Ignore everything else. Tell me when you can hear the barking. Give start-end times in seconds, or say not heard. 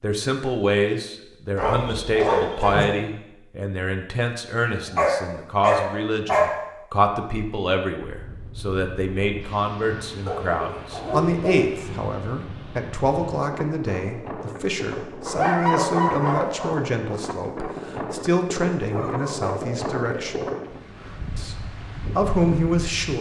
1.6-2.9, 4.7-6.5, 10.2-11.8, 15.2-16.8, 18.9-20.6.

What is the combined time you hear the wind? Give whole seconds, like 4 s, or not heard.
15 s.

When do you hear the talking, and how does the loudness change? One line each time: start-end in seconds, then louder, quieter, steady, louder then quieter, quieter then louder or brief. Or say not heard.
0.0-20.4 steady
21.4-23.1 brief.